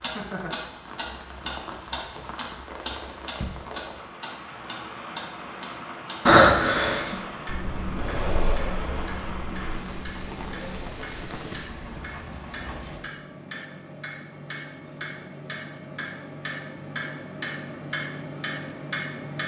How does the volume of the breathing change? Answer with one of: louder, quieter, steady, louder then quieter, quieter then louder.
quieter.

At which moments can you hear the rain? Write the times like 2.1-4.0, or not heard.
0.0-13.1.